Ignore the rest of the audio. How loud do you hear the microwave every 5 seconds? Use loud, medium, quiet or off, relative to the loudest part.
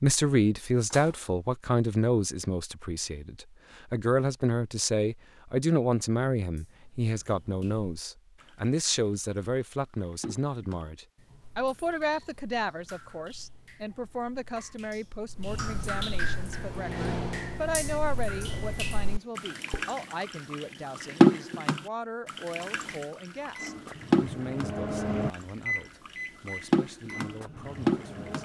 off, off, off, loud, loud, loud.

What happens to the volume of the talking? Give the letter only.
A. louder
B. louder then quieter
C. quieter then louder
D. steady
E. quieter
E.